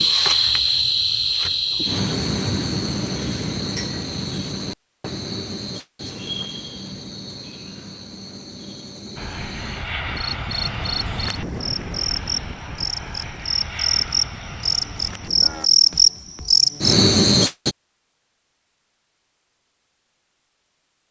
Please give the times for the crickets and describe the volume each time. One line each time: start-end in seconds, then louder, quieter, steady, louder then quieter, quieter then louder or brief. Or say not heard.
0.0-17.8 quieter then louder.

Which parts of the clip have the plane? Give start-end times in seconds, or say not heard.
9.2-15.7.